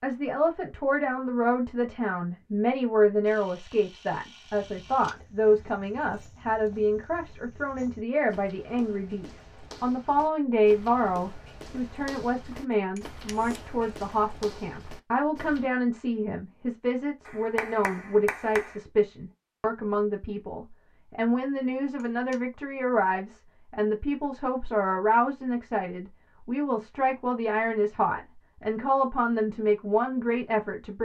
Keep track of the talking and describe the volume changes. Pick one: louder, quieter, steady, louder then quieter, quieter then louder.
steady.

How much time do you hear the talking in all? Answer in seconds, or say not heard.
31 s.